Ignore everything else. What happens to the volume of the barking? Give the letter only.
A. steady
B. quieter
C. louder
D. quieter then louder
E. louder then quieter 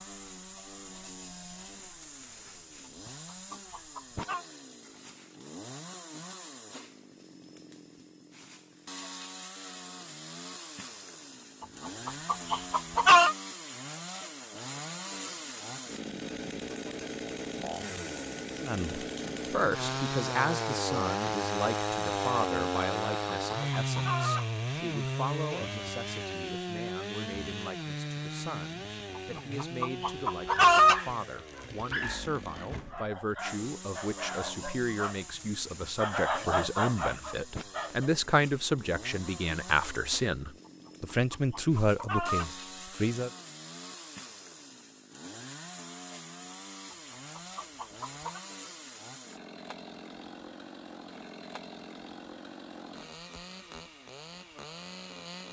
D.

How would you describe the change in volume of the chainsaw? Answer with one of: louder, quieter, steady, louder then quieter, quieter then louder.
louder then quieter.